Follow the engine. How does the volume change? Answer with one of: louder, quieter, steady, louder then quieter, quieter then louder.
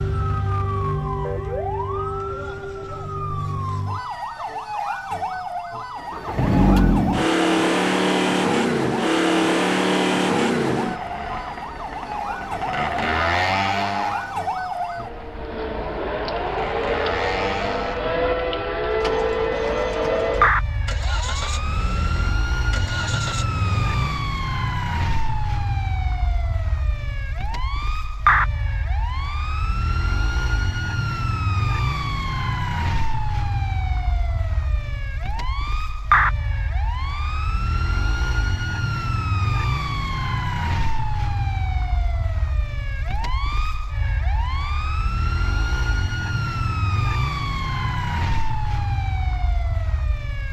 quieter.